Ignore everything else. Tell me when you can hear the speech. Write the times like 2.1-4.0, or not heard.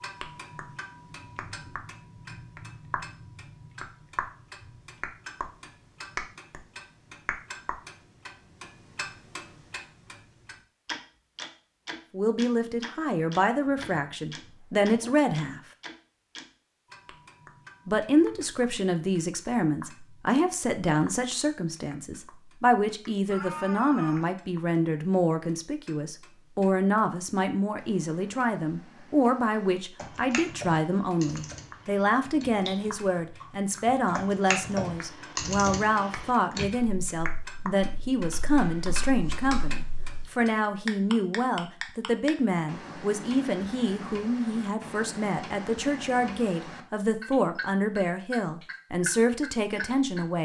12.1-15.6, 17.9-50.4.